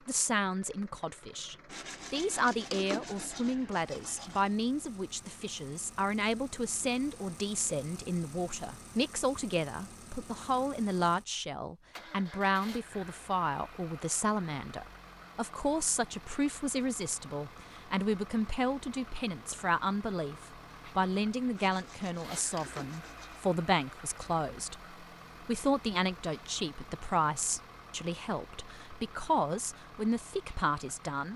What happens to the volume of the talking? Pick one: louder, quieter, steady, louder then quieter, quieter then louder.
steady.